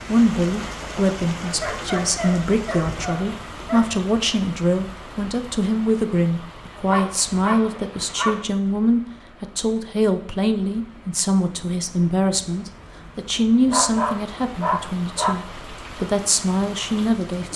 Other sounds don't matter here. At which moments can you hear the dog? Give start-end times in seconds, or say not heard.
1.6-4.0, 6.8-8.4, 13.7-15.3.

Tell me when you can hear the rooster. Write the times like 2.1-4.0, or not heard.
not heard.